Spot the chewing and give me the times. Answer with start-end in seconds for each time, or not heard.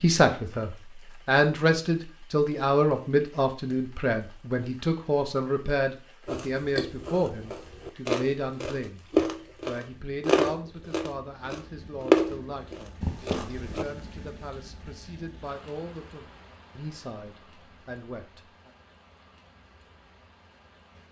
6.2-13.8.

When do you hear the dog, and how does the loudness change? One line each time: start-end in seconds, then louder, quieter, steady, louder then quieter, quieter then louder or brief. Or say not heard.
not heard.